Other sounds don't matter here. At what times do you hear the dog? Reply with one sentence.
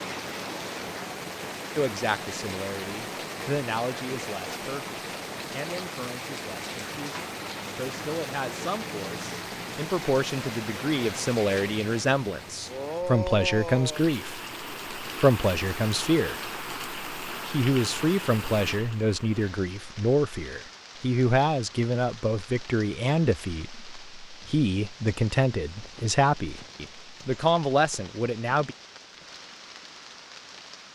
The dog can't be heard in this clip.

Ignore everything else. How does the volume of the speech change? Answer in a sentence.
The loudness of the speech goes up.